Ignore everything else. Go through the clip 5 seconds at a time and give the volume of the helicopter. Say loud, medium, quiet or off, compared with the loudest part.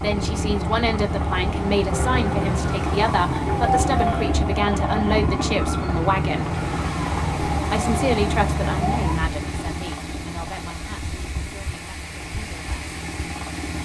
loud, loud, medium.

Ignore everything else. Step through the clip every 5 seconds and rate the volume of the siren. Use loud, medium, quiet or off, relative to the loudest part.
loud, loud, off.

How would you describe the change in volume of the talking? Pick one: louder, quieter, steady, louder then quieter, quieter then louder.
quieter.